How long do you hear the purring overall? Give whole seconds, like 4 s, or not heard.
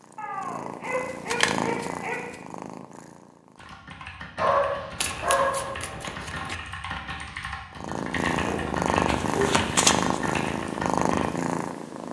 8 s.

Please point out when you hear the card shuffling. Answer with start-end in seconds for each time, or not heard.
1.2-2.4, 5.0-6.5, 9.1-10.2.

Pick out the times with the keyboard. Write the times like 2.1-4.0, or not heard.
3.5-11.2.